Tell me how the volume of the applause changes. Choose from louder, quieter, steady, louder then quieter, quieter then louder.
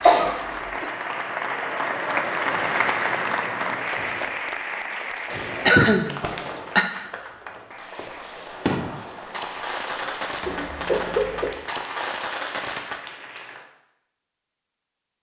quieter.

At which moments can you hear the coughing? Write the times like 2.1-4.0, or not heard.
0.0-0.8, 5.2-6.2, 10.4-11.5.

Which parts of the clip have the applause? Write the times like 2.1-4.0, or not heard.
0.0-13.7.